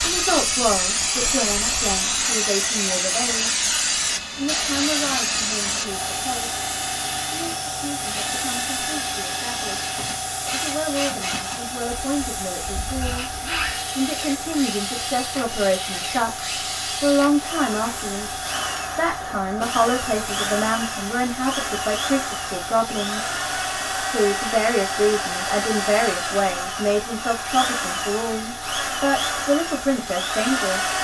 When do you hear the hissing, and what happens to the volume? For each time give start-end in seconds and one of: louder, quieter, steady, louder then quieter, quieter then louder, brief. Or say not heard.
0.0-30.9 quieter.